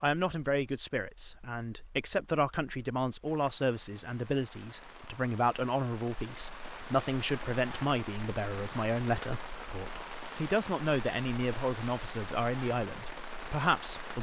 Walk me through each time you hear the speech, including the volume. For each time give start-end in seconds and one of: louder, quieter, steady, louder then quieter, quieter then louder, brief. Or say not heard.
0.0-14.1 steady.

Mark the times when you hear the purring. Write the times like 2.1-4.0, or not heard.
not heard.